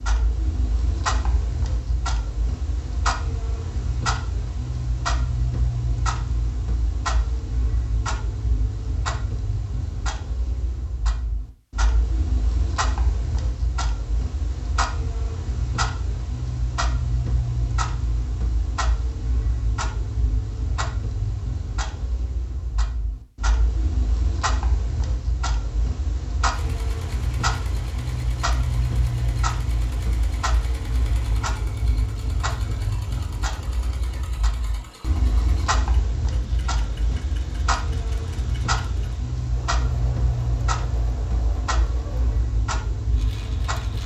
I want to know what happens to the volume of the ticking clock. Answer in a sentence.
The volume of the ticking clock stays about the same.